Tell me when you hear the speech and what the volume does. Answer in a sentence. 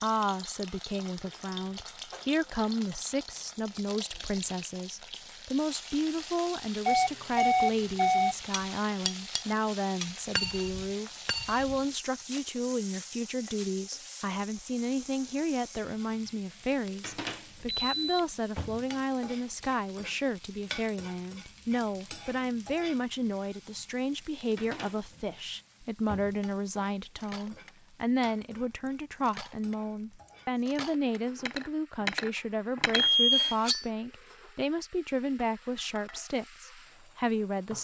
The speech can be heard from 0.0 to 37.7 s, at a steady volume.